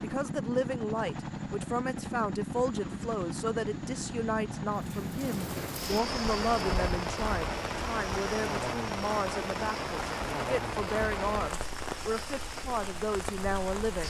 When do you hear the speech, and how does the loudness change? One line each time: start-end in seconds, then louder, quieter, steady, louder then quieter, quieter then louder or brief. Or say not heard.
0.0-14.0 steady.